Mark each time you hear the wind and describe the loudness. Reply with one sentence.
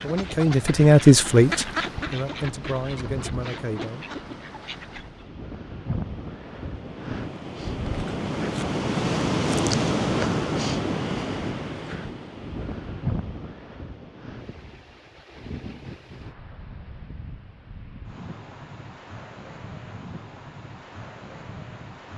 The wind can be heard from 0.0 to 22.1 s, getting louder then quieter.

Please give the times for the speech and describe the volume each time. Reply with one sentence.
You can hear the speech from 0.0 to 4.0 s, getting quieter.